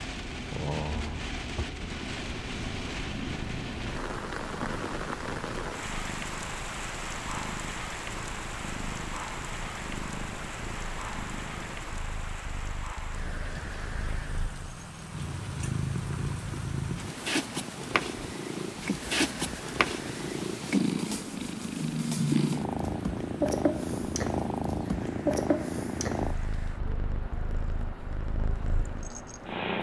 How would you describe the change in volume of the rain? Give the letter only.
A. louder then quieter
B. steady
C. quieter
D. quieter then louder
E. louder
C.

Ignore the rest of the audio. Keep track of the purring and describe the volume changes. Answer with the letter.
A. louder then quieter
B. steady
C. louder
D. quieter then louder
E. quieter
C.